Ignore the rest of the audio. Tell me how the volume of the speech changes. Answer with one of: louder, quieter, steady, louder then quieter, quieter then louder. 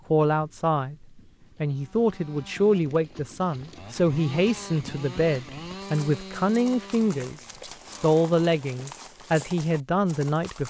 steady.